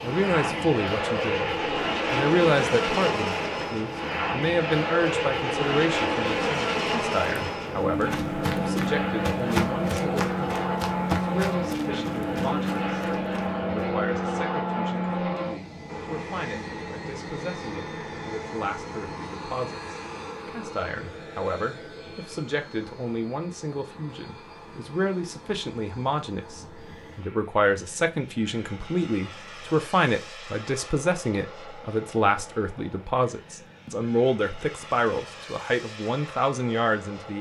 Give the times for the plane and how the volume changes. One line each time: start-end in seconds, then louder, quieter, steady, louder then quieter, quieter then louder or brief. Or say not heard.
0.0-37.3 quieter.